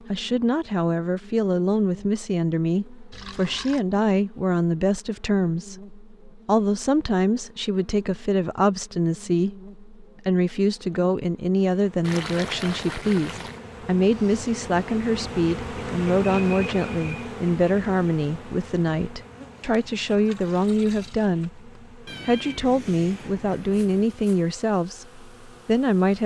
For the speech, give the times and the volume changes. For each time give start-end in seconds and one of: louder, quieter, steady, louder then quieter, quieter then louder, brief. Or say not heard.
0.1-26.2 steady.